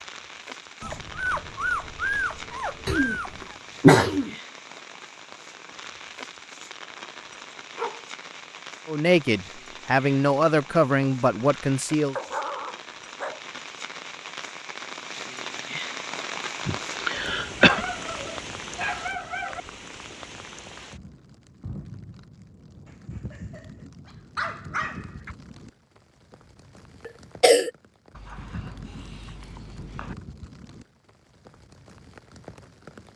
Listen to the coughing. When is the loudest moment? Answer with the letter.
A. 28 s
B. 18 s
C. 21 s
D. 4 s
D.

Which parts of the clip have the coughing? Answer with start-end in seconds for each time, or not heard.
2.9-4.3, 16.6-17.9, 27.1-27.7.